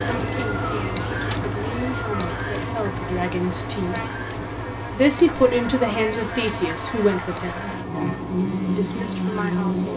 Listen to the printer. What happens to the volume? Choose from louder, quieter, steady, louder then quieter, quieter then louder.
quieter.